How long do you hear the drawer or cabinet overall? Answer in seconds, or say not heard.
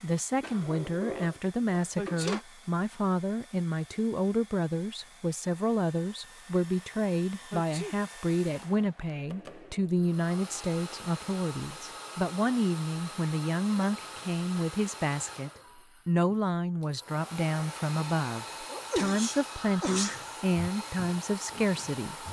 2 s.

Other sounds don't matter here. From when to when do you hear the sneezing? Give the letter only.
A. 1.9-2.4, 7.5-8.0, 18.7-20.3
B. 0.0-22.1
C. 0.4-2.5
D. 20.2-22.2
A.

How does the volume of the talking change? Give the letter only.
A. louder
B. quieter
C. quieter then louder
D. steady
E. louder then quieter
D.